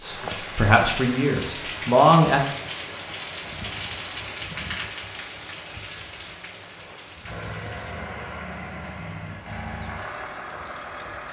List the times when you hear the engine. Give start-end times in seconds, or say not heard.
7.2-11.2.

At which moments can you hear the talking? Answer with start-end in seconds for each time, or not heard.
0.0-2.5.